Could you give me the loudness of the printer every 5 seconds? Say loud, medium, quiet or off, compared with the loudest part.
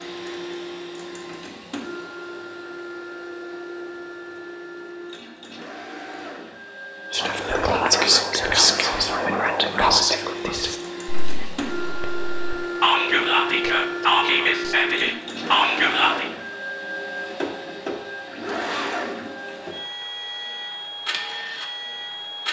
medium, medium, loud, loud, loud.